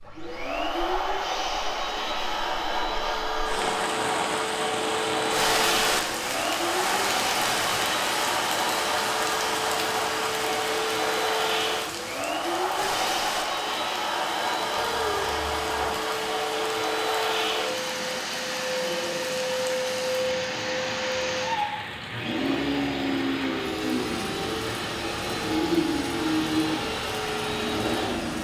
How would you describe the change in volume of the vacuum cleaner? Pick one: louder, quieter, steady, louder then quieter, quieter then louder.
steady.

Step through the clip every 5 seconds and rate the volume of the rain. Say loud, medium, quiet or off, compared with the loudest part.
loud, loud, medium, medium, medium, medium.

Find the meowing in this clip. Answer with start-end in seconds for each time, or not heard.
14.8-15.9.